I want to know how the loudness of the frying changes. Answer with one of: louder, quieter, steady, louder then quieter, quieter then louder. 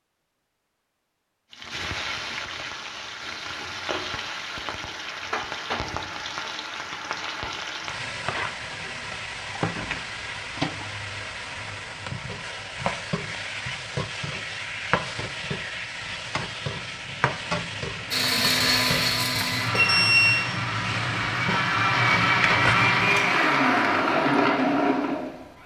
steady.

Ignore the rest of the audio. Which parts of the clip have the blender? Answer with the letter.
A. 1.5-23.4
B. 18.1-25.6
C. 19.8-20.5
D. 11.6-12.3
B.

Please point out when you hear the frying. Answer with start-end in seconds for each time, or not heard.
1.5-23.4.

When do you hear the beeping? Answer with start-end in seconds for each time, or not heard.
19.8-20.5.